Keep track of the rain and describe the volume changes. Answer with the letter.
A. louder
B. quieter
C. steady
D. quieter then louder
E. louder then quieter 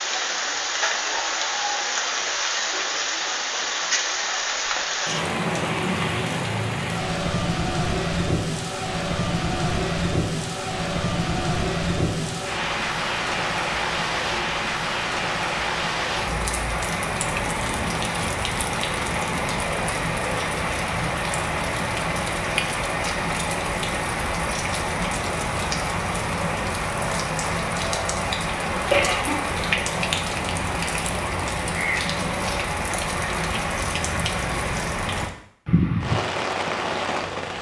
C.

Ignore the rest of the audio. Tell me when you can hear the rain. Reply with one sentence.
You can hear the rain from 0.0 to 37.5 s.